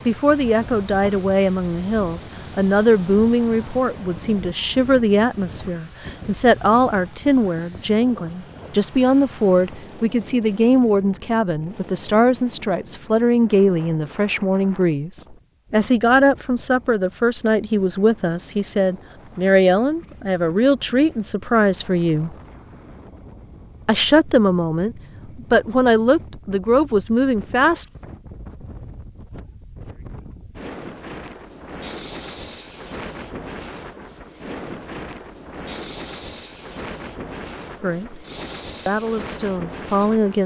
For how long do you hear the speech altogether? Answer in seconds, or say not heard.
28 s.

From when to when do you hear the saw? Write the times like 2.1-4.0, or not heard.
not heard.